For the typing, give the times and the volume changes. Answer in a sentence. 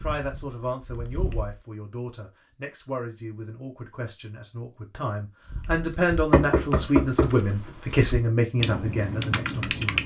The typing can be heard briefly from 0.0 to 1.6 s; and from 5.5 to 10.0 s, getting quieter then louder.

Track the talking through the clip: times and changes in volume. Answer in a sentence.
You can hear the talking from 0.0 to 10.0 s, getting louder.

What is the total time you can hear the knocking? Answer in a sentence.
The knocking can be heard for 2 seconds in total.